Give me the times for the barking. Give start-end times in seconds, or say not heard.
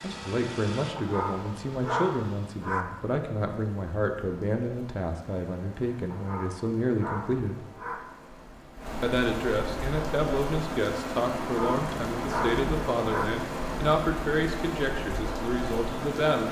0.9-2.9, 6.1-8.0, 11.5-13.2.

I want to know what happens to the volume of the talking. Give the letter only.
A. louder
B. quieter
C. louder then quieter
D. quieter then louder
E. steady
E.